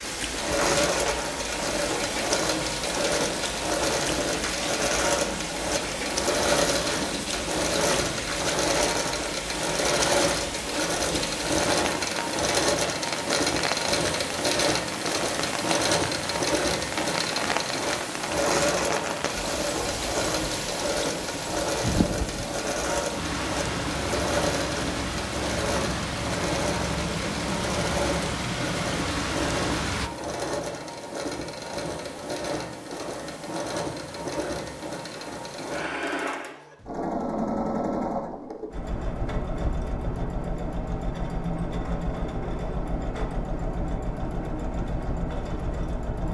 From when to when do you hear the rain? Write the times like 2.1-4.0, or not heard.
0.0-30.1.